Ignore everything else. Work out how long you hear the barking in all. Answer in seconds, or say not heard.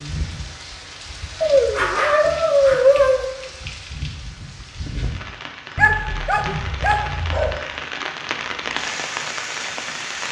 4 s.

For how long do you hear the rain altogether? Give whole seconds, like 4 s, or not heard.
10 s.